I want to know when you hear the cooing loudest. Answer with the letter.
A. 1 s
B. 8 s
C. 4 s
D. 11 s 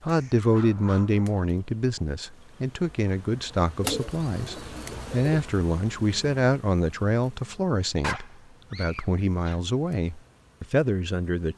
C.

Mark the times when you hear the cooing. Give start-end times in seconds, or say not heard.
3.8-5.5.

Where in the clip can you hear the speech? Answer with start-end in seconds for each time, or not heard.
0.0-11.5.